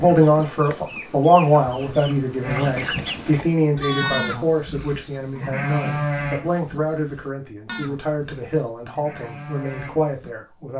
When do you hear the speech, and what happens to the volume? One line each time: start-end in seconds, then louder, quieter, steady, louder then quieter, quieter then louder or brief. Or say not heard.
0.0-10.7 quieter.